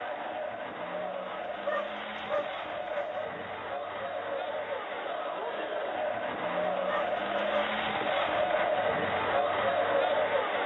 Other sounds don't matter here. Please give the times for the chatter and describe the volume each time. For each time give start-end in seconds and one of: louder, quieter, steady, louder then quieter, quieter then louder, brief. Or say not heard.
0.0-10.6 louder.